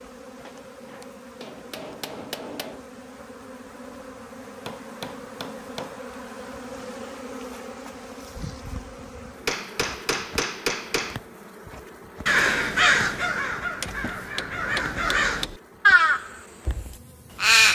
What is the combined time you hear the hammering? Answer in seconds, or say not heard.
7 s.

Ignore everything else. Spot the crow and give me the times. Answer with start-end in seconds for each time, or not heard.
12.2-17.7.